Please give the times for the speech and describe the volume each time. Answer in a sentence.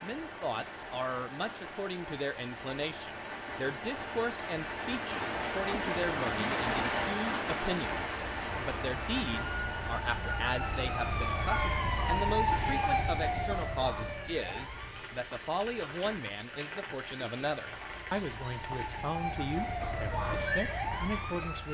The speech can be heard from 0.0 to 21.6 s, at a steady volume.